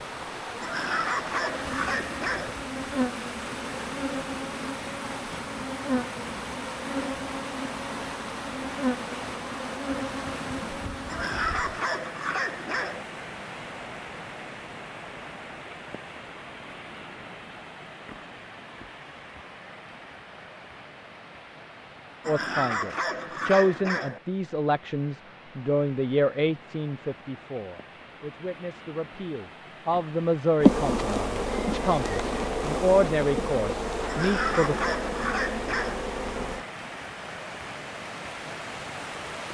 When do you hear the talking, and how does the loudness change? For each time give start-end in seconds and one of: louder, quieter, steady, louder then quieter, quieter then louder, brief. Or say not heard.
22.2-34.8 quieter then louder.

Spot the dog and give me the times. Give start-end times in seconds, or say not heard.
0.6-2.5, 11.1-13.1, 22.2-24.2, 34.0-36.0.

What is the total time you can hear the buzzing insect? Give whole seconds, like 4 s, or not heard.
16 s.